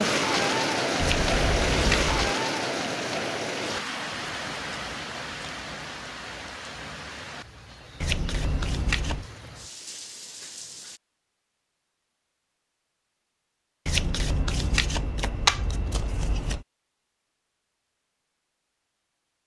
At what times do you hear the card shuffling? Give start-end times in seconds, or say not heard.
0.9-2.3, 8.0-9.2, 13.8-16.6.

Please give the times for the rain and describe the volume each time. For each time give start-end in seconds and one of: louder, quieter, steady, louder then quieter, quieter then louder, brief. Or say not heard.
0.0-11.0 quieter.